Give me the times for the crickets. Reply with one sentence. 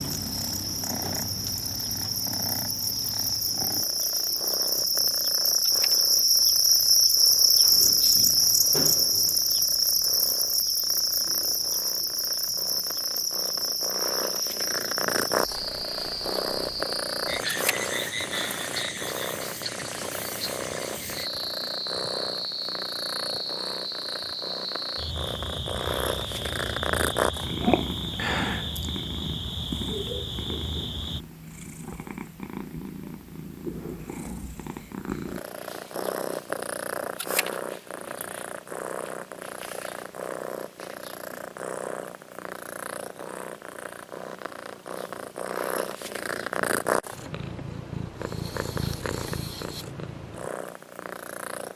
You can hear the crickets from 0.0 to 31.2 s.